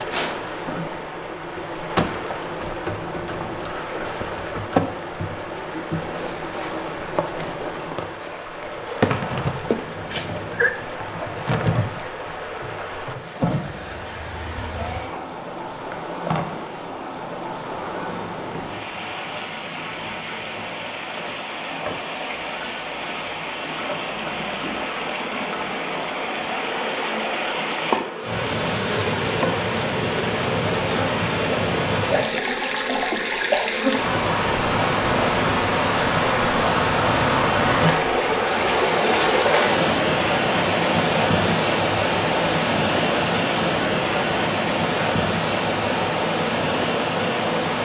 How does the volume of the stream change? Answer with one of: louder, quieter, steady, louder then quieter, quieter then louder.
louder.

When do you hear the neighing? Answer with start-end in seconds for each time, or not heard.
9.7-10.7.